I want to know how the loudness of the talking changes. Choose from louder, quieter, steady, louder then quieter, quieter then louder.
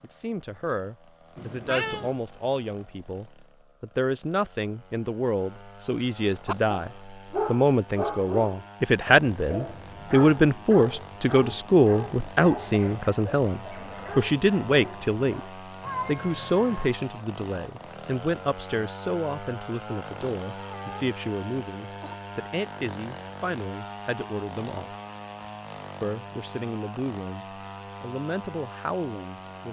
louder then quieter.